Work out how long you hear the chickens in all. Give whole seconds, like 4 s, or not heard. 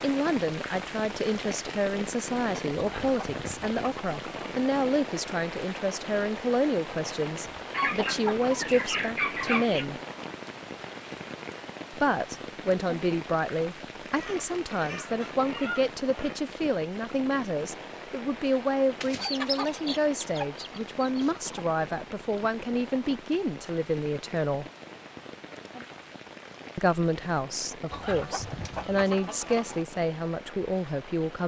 11 s.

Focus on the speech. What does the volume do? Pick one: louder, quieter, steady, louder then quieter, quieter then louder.
steady.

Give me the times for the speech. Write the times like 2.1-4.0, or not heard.
0.0-10.0, 11.9-24.6, 26.8-31.4.